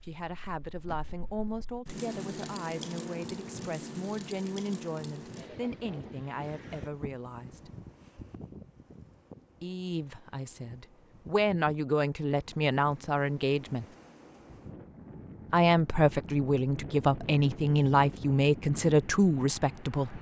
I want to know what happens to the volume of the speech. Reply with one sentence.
The loudness of the speech goes up.